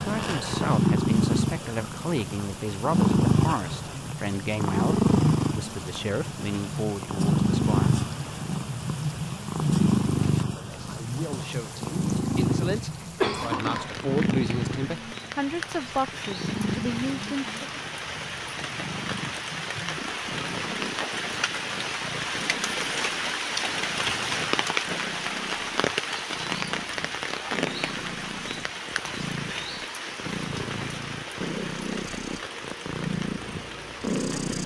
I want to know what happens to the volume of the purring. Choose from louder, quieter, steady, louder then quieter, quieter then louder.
quieter then louder.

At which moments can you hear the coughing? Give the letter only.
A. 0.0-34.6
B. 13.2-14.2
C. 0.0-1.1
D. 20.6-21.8
B.